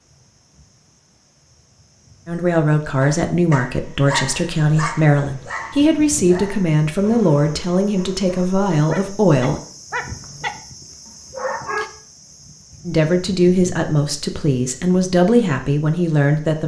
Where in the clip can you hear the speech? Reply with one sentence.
The speech can be heard from 2.2 to 9.6 s and from 12.8 to 16.6 s.